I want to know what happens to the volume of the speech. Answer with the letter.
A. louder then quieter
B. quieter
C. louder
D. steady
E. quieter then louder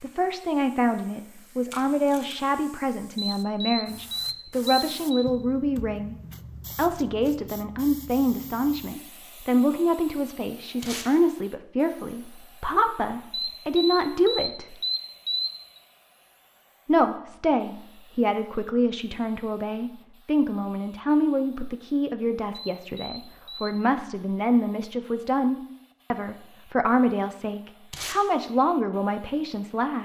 D.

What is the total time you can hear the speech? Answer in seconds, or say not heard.
27 s.